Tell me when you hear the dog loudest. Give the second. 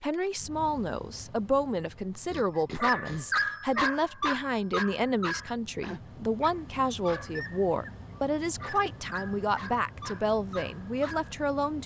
3 s.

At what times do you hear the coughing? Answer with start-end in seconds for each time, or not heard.
2.2-3.3.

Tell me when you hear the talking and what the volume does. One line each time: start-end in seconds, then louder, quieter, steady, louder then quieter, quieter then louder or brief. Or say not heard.
0.0-11.8 steady.